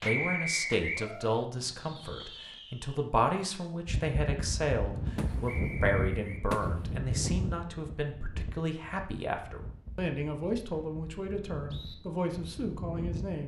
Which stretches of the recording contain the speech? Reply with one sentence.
The speech can be heard from 0.0 to 13.4 s.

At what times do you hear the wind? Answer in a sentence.
The wind can be heard from 3.9 to 13.4 s.